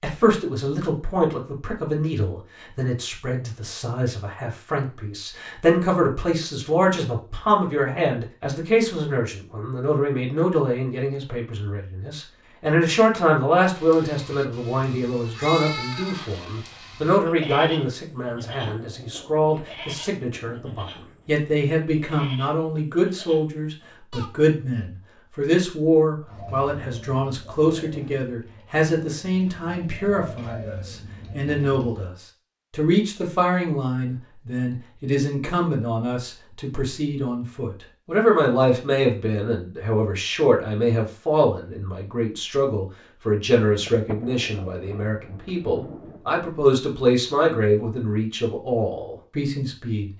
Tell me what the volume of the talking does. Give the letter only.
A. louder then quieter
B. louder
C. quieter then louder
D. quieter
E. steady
E.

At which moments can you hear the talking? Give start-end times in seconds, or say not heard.
0.0-50.1.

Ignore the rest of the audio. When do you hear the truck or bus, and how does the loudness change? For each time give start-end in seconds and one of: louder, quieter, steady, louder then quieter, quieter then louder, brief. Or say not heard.
not heard.